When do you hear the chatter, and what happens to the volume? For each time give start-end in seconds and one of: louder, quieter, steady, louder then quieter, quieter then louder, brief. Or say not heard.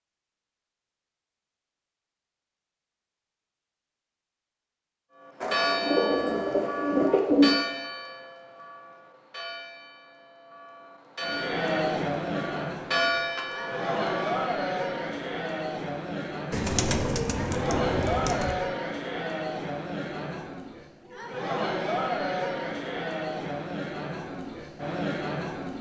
11.2-25.7 steady.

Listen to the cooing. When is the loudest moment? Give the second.
7 s.